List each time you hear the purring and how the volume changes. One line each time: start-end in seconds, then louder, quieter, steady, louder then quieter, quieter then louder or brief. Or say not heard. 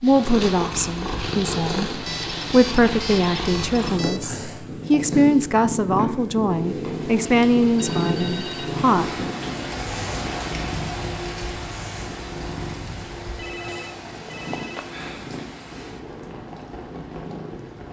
0.0-17.8 quieter.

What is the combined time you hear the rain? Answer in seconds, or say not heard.
11 s.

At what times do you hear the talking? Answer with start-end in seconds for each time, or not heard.
0.0-9.2.